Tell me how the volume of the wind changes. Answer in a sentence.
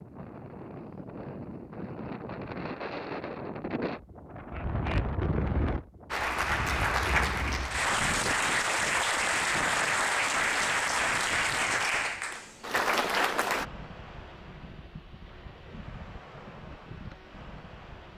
The loudness of the wind goes down.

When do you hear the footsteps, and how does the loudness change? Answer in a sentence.
The footsteps can't be heard in this clip.